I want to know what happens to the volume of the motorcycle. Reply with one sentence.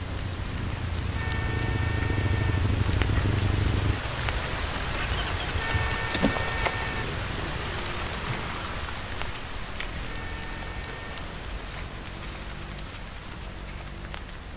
The loudness of the motorcycle goes down.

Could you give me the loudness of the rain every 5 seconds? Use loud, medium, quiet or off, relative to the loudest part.
loud, loud, medium.